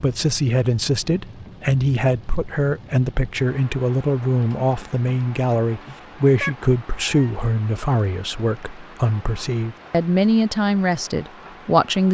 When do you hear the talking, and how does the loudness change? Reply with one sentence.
You can hear the talking from 0.0 to 12.0 s, at a steady volume.